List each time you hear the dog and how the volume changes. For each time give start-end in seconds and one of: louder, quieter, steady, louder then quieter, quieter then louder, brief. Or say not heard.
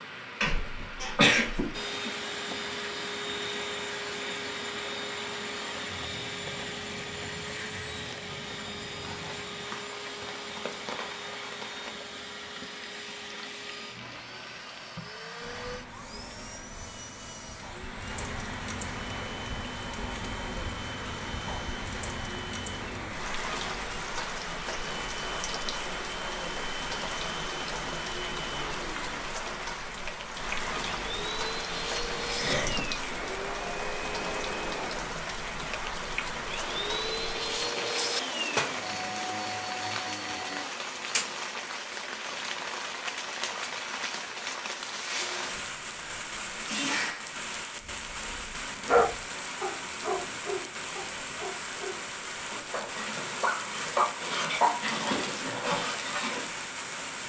47.8-56.5 quieter then louder.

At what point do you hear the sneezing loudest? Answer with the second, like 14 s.
1 s.